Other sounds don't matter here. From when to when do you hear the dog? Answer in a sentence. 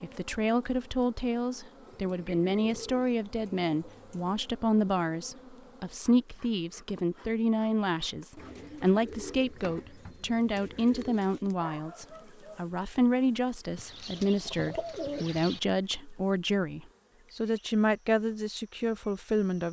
You can hear the dog from 11.6 to 12.7 s.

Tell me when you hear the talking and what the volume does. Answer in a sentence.
The talking can be heard from 0.0 to 19.6 s, at a steady volume.